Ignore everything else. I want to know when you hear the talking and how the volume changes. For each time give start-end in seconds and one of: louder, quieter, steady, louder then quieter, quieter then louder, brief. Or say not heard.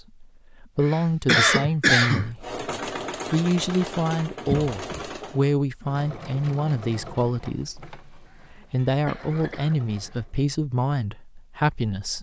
0.0-12.1 steady.